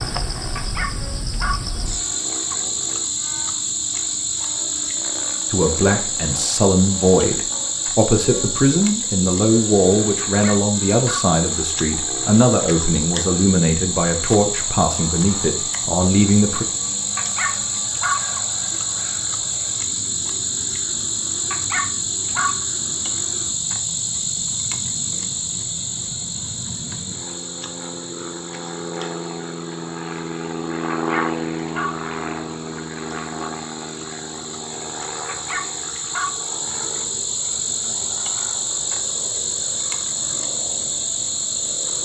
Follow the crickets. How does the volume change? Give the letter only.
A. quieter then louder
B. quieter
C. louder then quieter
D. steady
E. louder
A.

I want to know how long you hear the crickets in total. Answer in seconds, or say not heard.
42 s.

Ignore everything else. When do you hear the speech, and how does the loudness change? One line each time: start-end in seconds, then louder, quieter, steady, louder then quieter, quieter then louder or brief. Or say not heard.
5.5-16.6 steady.